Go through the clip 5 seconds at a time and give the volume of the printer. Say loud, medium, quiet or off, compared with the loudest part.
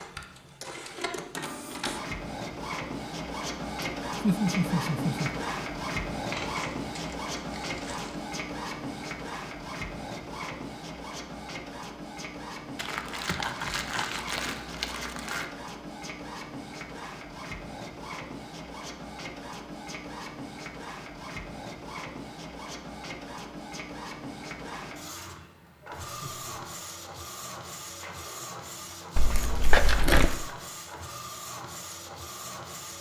loud, loud, medium, medium, medium, medium, medium.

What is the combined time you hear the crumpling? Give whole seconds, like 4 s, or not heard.
6 s.